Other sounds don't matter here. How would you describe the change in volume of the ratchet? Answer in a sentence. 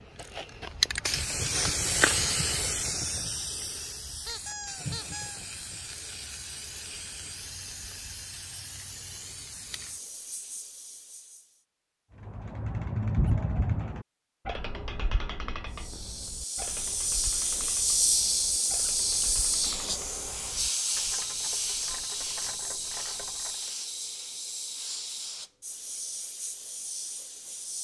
The volume of the ratchet goes down.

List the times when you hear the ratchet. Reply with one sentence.
You can hear the ratchet from 12.2 to 23.7 s.